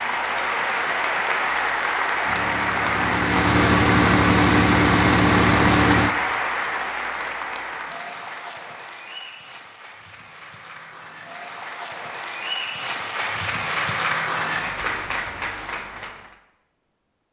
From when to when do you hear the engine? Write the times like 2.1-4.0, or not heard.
2.2-6.2.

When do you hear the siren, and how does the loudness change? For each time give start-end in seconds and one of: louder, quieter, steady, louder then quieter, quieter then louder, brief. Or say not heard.
not heard.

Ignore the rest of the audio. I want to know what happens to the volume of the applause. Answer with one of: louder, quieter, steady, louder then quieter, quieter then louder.
quieter then louder.